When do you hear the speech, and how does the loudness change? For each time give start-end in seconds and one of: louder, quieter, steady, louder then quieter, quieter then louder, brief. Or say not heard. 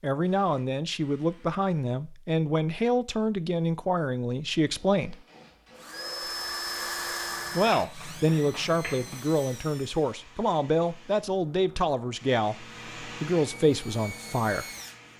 0.0-5.2 steady
7.5-14.7 steady.